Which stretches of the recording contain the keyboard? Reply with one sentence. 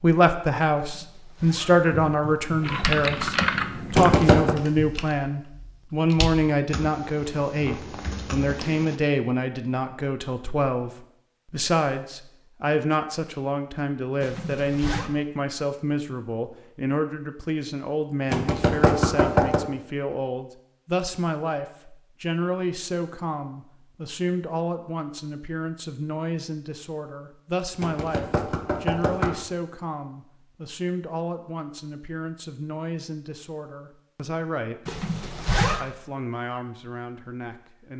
You can hear the keyboard from 2.6 to 9.0 s.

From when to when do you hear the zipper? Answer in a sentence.
You can hear the zipper from 0.8 to 3.0 s, from 14.2 to 15.1 s and from 34.9 to 35.9 s.